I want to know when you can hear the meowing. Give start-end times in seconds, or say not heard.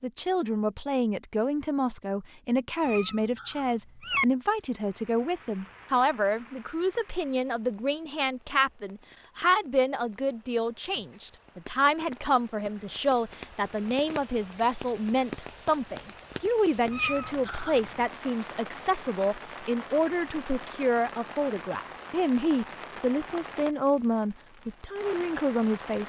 2.8-4.2, 16.9-18.1.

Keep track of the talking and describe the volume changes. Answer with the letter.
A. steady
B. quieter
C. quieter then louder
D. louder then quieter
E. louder
A.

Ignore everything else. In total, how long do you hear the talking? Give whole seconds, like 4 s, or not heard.
26 s.